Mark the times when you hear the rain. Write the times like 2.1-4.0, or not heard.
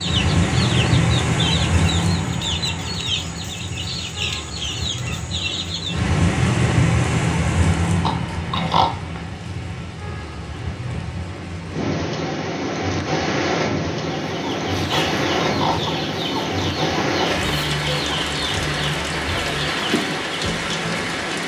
0.0-21.4.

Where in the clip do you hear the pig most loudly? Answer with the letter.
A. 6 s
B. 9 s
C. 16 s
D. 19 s
B.